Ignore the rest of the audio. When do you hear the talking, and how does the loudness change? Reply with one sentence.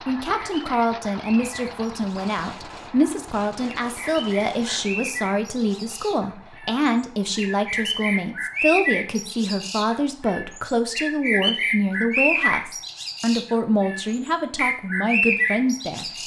You can hear the talking from 0.1 to 16.1 s, at a steady volume.